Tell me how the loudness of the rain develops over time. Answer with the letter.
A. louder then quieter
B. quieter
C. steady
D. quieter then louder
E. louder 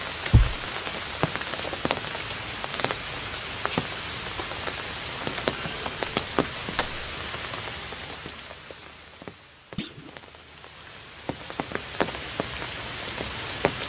D.